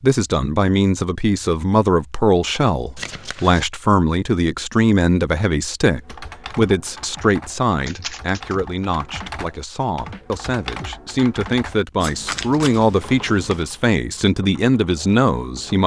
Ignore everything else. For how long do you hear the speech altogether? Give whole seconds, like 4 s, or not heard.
16 s.